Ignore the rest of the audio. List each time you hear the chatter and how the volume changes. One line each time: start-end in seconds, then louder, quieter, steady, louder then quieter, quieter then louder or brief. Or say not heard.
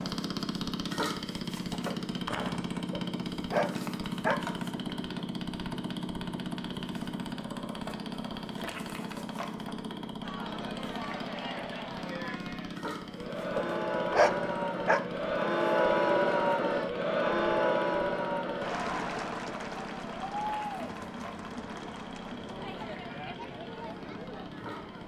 10.2-25.0 louder then quieter.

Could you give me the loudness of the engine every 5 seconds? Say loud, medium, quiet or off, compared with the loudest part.
loud, loud, medium, medium, medium.